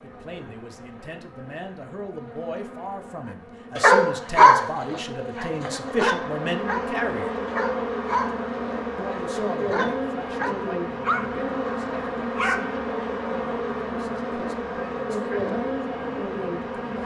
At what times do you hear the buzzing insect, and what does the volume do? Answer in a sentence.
The buzzing insect can be heard from 0.0 to 17.0 s, getting louder.